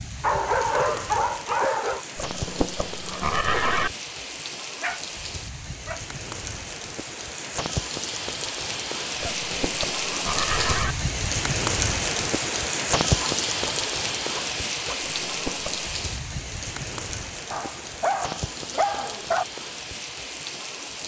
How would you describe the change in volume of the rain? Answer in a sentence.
The volume of the rain goes up, then down.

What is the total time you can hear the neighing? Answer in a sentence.
You can hear the neighing for 4 seconds altogether.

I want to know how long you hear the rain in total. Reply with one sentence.
The rain can be heard for 21 seconds in total.